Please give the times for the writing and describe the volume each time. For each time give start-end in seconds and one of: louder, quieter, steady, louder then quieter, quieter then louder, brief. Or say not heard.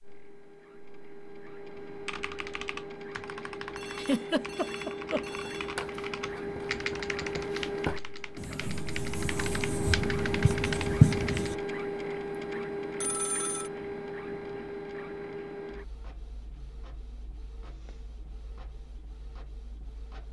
5.3-11.6 louder.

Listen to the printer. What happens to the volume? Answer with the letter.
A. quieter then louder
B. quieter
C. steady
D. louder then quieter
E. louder
D.